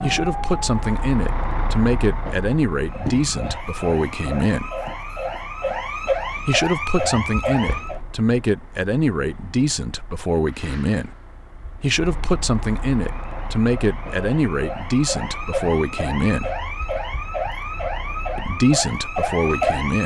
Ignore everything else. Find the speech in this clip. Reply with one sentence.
You can hear the speech from 0.0 to 4.7 s, from 6.5 to 11.1 s, from 11.8 to 16.5 s and from 18.4 to 20.0 s.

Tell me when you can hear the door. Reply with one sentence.
The door can't be heard in this clip.